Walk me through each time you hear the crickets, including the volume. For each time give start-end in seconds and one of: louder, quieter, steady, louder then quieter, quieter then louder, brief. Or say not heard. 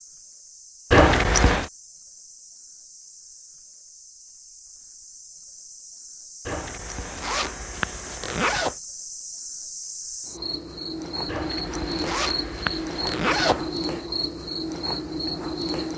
0.0-15.9 louder.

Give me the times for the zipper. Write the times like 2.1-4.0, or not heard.
0.9-1.7, 6.5-8.8, 11.2-13.7.